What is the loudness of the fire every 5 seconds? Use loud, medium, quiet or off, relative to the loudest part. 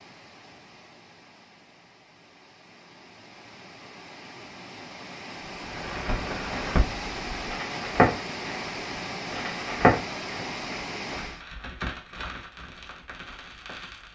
off, loud, quiet.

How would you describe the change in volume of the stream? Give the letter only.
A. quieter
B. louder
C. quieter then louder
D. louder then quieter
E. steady
B.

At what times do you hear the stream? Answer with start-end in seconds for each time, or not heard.
0.0-11.4.